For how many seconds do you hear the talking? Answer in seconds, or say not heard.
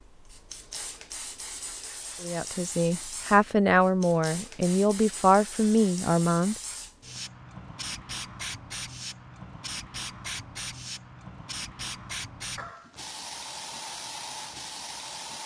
4 s.